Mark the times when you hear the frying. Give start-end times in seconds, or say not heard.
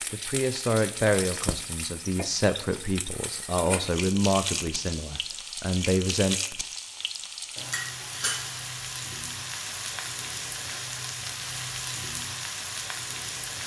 0.0-13.6.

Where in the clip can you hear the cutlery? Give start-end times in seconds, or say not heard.
not heard.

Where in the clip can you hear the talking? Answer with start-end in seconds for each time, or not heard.
0.1-6.3.